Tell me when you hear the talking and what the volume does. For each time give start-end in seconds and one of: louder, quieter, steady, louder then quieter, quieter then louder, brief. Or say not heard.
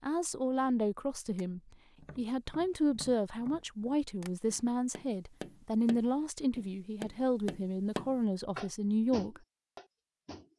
0.0-9.4 steady.